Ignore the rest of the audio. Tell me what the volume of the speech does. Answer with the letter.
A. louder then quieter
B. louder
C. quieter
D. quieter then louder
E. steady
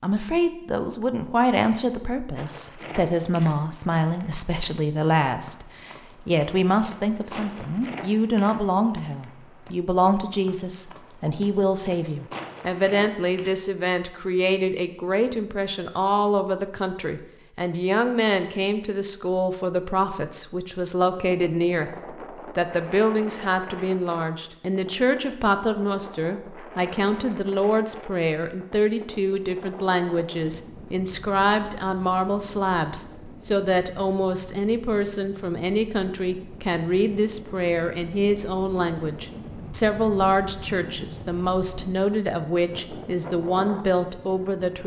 E.